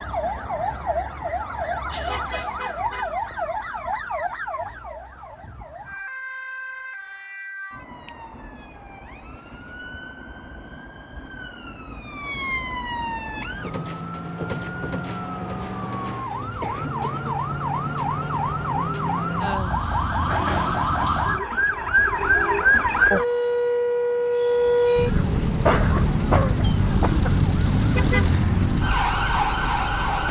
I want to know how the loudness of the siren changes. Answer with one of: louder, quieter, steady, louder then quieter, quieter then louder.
quieter then louder.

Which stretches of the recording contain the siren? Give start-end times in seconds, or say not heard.
0.0-30.2.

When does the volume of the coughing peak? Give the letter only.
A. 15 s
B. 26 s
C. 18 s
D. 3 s
B.